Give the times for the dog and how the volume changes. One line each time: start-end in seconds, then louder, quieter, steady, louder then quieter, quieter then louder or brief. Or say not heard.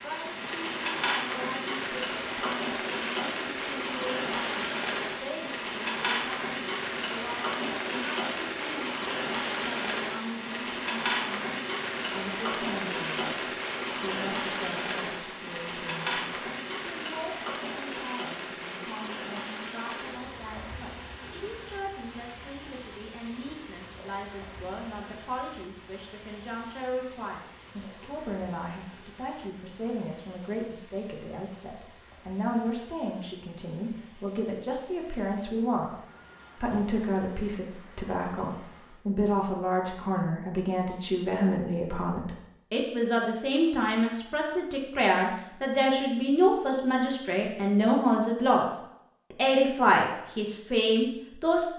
not heard.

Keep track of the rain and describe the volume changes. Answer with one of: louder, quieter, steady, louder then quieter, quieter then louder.
quieter.